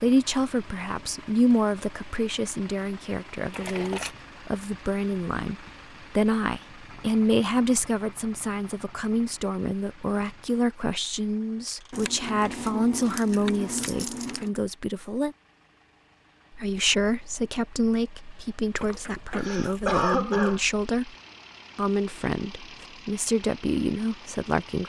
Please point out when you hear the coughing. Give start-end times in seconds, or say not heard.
19.4-20.6.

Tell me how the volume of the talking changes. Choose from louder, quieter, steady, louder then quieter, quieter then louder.
steady.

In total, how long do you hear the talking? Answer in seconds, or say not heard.
23 s.